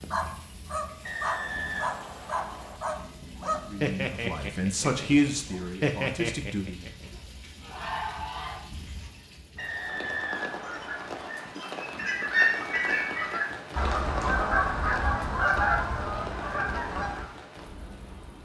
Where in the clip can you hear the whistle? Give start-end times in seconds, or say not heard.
1.0-2.8, 9.6-11.3.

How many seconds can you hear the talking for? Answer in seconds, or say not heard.
3 s.